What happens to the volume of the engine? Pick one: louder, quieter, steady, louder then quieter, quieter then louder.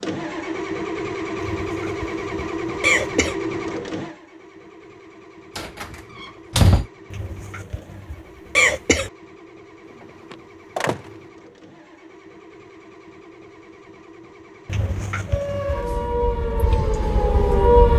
quieter.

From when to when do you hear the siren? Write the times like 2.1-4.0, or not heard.
15.2-17.9.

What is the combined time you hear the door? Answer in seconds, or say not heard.
2 s.